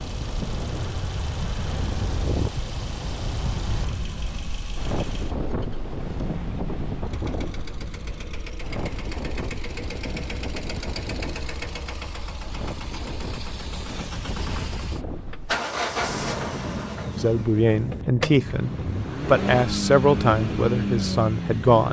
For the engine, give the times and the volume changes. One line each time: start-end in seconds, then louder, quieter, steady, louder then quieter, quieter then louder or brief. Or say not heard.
0.0-21.8 louder.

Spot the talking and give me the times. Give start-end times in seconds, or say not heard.
17.1-21.8.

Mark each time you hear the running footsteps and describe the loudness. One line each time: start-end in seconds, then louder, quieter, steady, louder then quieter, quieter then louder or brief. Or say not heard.
not heard.